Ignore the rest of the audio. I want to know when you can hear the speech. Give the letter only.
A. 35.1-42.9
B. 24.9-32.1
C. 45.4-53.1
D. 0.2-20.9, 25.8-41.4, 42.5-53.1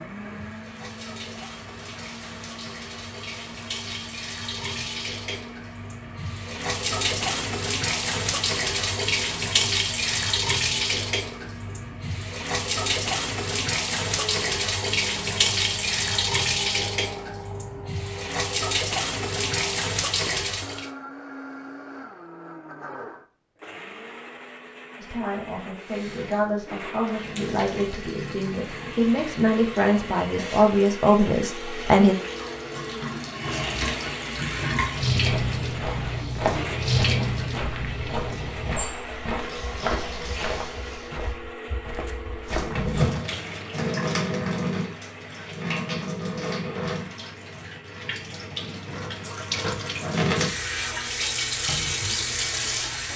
B.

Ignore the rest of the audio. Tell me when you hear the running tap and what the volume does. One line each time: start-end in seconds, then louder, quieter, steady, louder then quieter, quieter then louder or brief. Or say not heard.
0.2-20.9 louder
25.8-41.4 louder then quieter
42.5-53.1 quieter then louder.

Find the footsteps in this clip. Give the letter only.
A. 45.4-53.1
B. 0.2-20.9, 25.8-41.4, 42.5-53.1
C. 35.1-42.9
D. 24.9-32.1
C.